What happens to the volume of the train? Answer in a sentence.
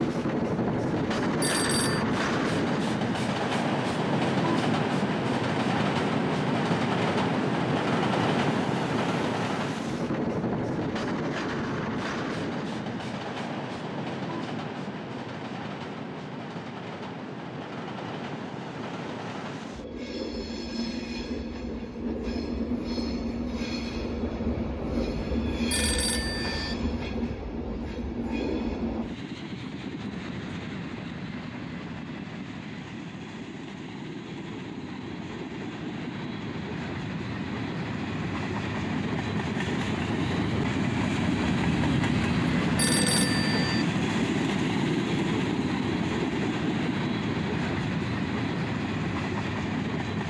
The volume of the train goes down, then up.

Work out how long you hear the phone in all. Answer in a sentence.
The phone can be heard for 3 seconds in total.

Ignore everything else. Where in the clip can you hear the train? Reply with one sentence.
You can hear the train from 0.0 to 50.2 s.